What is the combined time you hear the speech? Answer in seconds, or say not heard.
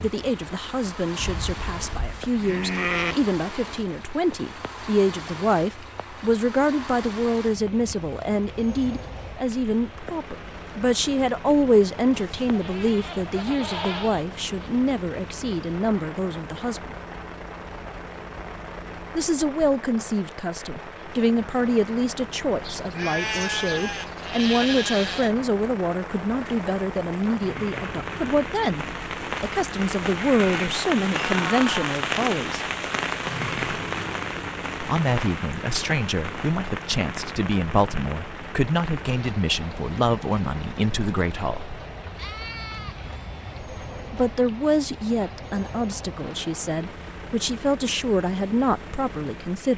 43 s.